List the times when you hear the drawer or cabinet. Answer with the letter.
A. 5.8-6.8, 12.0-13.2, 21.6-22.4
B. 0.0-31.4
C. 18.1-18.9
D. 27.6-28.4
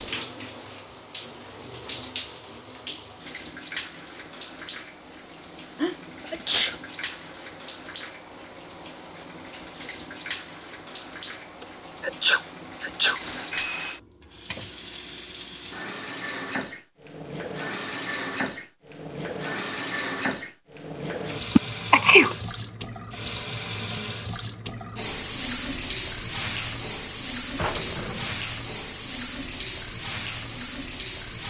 D.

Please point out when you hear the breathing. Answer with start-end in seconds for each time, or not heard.
not heard.